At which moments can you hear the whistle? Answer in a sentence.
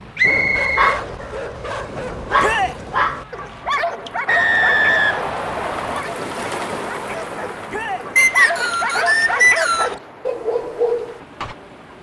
The whistle can be heard from 0.1 to 1.0 s, from 4.2 to 6.0 s and from 8.2 to 9.9 s.